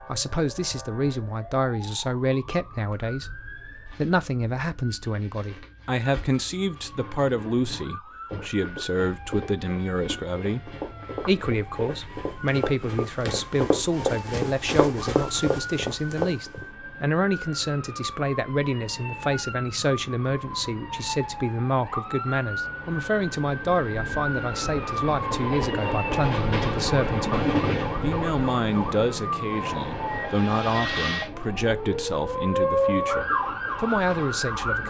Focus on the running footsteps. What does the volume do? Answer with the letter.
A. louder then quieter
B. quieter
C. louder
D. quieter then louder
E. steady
C.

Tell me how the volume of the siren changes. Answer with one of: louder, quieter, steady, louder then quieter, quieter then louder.
louder.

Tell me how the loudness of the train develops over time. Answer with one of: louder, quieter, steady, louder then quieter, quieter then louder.
louder then quieter.